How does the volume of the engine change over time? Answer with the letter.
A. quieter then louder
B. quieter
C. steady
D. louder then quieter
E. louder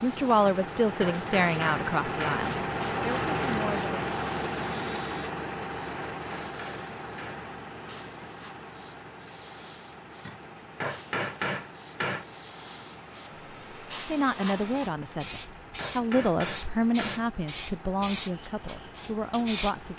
B.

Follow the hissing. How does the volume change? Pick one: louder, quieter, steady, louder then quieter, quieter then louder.
louder.